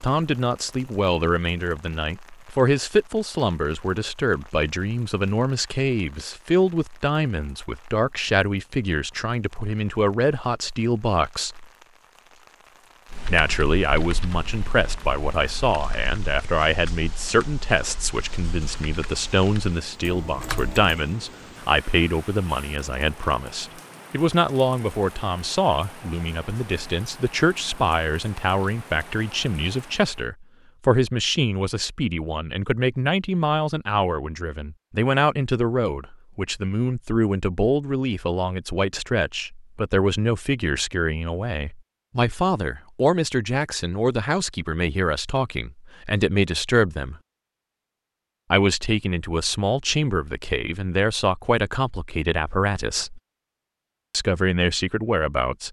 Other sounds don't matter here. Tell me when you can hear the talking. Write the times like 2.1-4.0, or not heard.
0.0-11.7, 13.2-47.1, 48.5-53.2, 54.1-55.6.